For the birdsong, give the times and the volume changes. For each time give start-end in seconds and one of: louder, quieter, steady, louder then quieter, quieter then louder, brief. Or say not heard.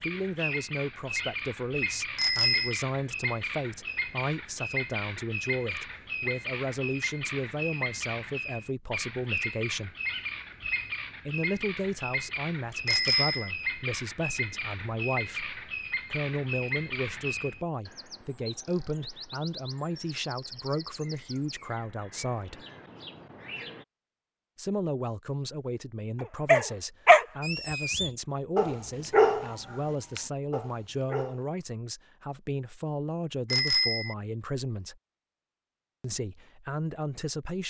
0.0-23.9 quieter.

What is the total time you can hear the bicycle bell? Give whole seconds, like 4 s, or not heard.
2 s.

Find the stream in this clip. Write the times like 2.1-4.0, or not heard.
not heard.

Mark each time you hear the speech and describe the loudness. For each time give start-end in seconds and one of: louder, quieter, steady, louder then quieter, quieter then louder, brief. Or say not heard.
0.0-9.9 steady
11.2-22.6 steady
24.6-35.0 steady
36.0-37.6 brief.